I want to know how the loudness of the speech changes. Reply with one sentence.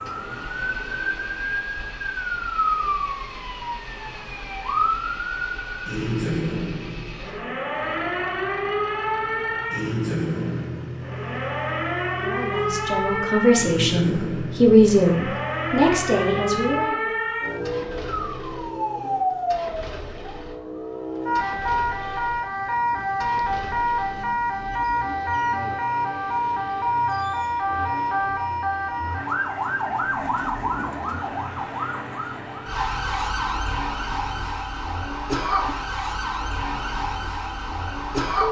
The loudness of the speech goes up, then down.